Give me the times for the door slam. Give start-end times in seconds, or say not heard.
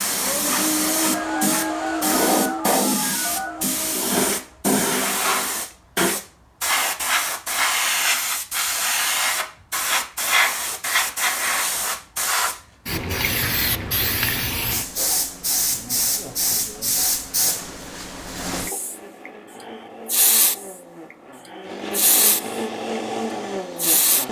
not heard.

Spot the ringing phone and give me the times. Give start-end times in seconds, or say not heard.
1.1-3.7.